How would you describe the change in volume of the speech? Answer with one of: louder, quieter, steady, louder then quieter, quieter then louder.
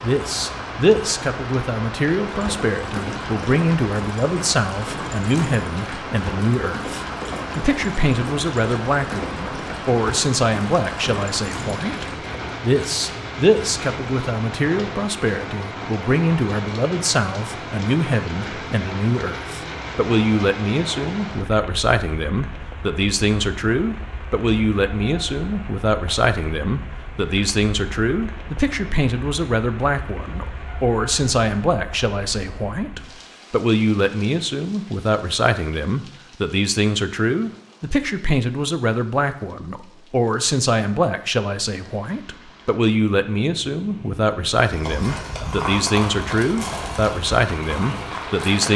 steady.